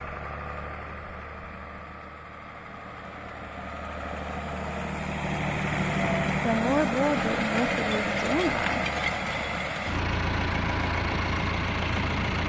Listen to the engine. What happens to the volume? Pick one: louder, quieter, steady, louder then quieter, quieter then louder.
louder.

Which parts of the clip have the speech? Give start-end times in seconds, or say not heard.
6.4-8.8.